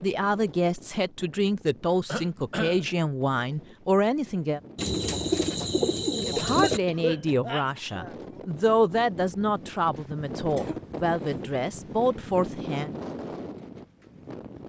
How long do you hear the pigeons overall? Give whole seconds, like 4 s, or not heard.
2 s.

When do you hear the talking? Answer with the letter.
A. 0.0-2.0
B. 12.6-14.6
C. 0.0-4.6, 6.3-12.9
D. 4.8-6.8
C.